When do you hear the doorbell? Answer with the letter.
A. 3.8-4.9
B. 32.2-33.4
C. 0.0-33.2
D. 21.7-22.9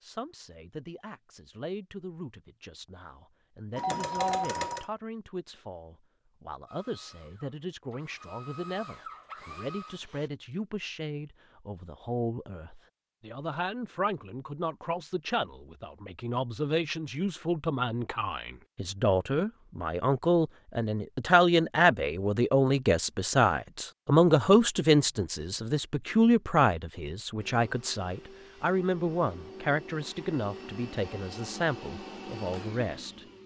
A.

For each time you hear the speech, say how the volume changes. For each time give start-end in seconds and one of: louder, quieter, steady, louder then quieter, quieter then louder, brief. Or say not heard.
0.0-33.2 louder then quieter.